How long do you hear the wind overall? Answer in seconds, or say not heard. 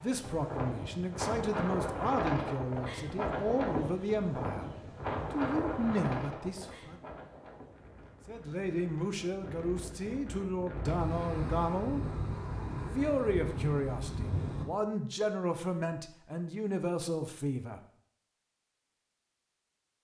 15 s.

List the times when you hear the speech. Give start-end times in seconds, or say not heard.
0.0-4.7, 5.3-7.0, 8.2-12.1, 12.9-17.8.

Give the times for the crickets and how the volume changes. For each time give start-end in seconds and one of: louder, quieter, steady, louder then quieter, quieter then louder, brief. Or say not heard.
not heard.